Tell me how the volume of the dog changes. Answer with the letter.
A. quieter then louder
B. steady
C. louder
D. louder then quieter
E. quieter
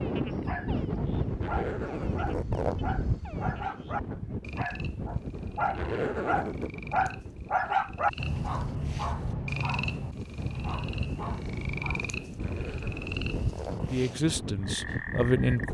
D.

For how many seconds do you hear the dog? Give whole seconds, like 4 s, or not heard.
12 s.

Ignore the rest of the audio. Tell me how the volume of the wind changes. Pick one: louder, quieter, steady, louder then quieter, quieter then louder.
quieter then louder.